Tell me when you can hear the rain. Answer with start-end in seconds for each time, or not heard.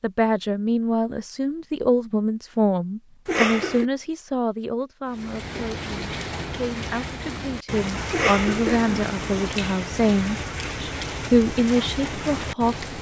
5.0-12.9.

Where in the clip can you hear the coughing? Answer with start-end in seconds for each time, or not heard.
3.2-3.9, 8.1-9.5.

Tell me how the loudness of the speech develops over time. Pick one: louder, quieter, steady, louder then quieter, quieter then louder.
quieter then louder.